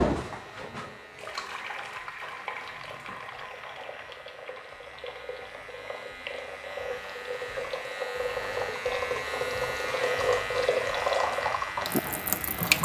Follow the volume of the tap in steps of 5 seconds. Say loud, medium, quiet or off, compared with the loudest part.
medium, medium, loud.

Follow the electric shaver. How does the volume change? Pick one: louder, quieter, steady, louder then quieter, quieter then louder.
louder.